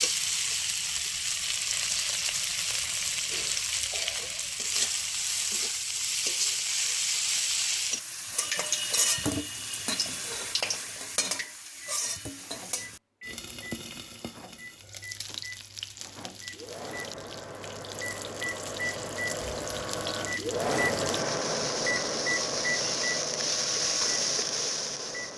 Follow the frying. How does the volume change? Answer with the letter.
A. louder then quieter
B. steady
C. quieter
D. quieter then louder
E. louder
D.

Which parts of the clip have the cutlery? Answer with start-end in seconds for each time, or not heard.
not heard.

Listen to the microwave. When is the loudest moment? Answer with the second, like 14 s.
21 s.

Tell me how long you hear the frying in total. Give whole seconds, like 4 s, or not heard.
25 s.